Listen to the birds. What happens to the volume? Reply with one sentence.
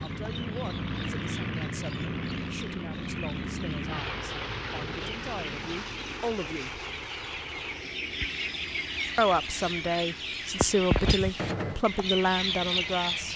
The volume of the birds goes up.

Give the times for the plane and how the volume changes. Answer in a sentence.
You can hear the plane from 0.0 to 13.3 s, getting quieter.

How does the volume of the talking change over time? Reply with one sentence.
The loudness of the talking goes up.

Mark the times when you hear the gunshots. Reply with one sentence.
You can hear the gunshots from 11.3 to 11.8 s.